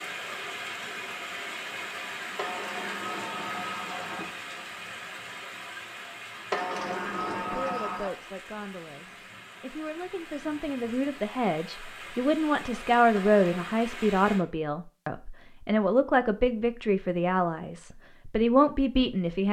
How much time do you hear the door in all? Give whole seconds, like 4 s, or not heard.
4 s.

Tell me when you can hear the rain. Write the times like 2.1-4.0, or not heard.
0.0-14.4.